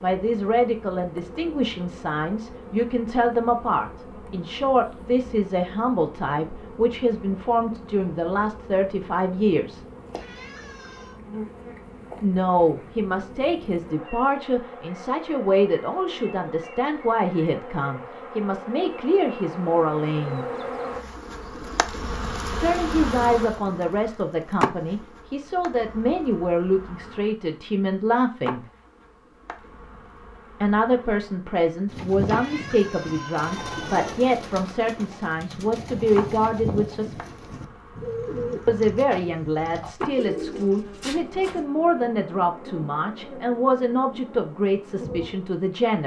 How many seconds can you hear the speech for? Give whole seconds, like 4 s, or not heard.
38 s.